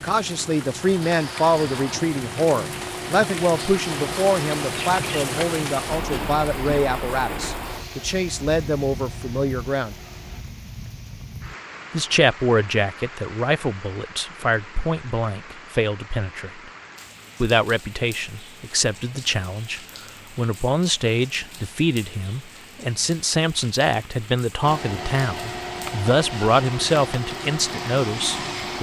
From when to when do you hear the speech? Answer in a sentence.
The speech can be heard from 0.0 to 9.9 s, from 11.9 to 16.7 s and from 17.4 to 28.7 s.